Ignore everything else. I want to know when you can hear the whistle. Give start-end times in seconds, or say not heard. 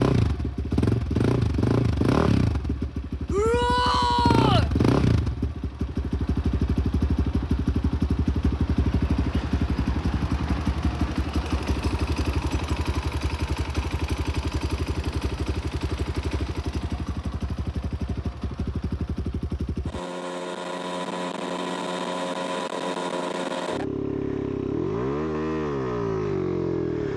not heard.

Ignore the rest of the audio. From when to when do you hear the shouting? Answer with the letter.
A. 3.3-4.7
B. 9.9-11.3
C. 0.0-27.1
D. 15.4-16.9
A.